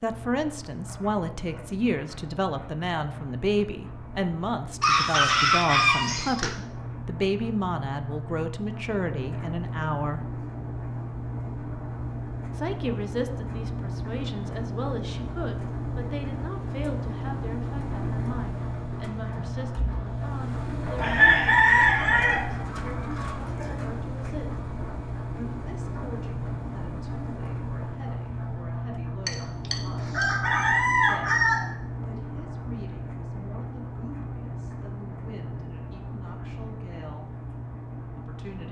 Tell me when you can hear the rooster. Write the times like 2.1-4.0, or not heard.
4.8-6.5, 20.9-23.8, 29.2-31.6.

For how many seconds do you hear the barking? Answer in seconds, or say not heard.
not heard.